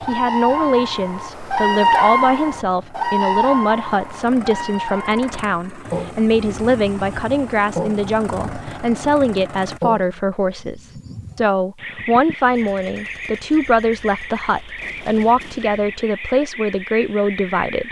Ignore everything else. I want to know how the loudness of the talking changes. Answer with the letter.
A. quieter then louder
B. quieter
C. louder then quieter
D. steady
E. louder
D.